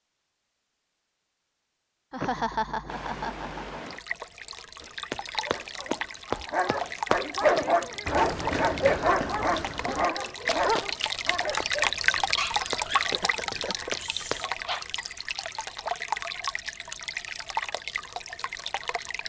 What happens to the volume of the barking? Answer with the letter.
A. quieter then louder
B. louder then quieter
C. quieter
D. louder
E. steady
C.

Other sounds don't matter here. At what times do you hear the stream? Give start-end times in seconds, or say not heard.
2.9-19.2.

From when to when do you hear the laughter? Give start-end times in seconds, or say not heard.
2.1-3.8, 7.5-8.2, 12.9-14.0.